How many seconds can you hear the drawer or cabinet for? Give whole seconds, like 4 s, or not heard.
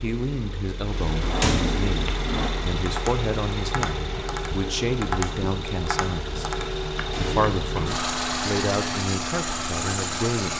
2 s.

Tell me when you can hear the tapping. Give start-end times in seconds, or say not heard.
2.0-7.5.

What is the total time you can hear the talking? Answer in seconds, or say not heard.
10 s.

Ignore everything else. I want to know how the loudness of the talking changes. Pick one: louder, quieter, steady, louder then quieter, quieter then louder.
steady.